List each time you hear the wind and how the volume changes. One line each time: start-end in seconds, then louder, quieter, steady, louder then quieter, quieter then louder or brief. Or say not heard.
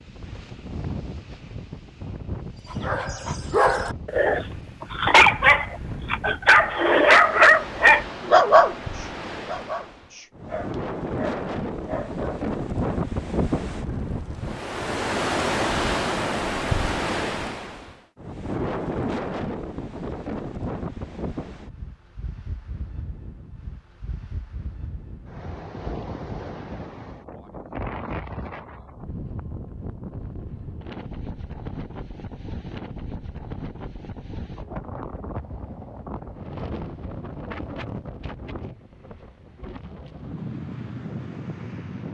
0.0-42.0 louder then quieter.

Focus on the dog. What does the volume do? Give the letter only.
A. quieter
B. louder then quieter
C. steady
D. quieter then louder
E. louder
B.